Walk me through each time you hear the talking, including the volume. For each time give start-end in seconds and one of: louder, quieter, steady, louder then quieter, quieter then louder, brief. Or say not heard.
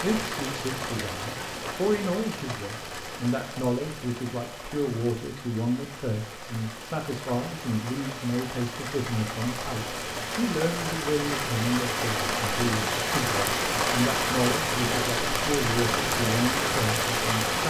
0.0-17.6 steady.